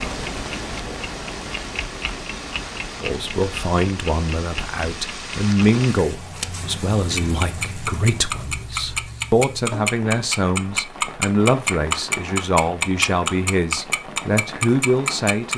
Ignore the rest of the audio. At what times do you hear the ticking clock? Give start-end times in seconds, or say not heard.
0.0-6.5, 7.2-15.5.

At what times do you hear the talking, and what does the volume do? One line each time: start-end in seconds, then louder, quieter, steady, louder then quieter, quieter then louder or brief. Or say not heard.
3.0-15.5 steady.